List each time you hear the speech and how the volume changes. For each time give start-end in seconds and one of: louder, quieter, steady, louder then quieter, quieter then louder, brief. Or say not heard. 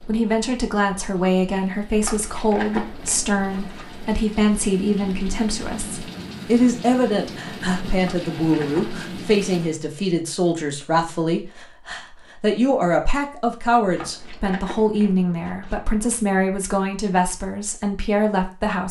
0.0-18.8 steady.